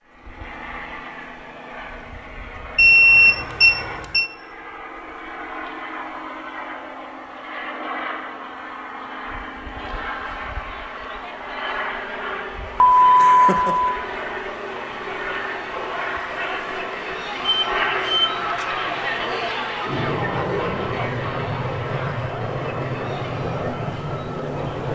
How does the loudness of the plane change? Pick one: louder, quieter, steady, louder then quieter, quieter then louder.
louder.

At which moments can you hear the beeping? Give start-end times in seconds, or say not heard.
2.8-4.2, 12.8-14.0, 17.4-18.3.